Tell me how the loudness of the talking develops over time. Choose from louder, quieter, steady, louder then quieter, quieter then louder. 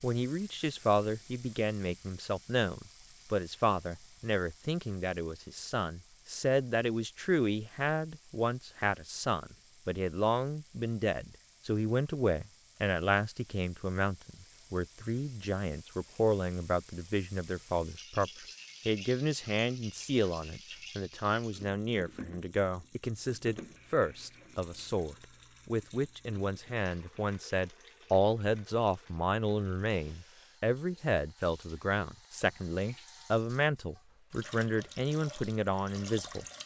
steady.